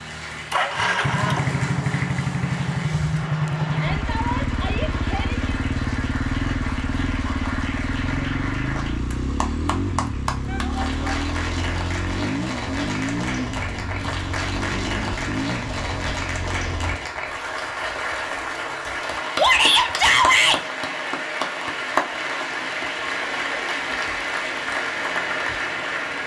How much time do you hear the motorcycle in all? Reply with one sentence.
You can hear the motorcycle for 17 seconds altogether.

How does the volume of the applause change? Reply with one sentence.
The volume of the applause goes up.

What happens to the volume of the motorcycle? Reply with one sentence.
The volume of the motorcycle goes down.